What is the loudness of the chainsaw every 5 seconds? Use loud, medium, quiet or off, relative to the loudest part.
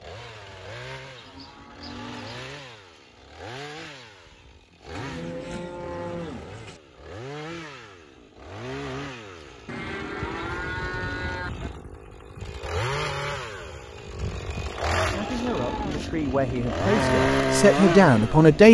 quiet, quiet, medium, loud.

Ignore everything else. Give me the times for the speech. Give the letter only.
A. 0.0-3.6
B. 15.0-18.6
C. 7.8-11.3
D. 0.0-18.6
B.